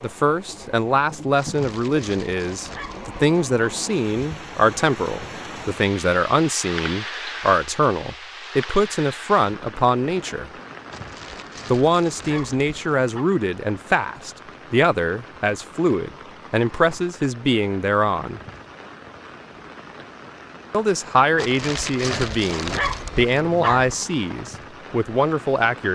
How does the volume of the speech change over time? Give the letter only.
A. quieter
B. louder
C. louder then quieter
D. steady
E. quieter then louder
D.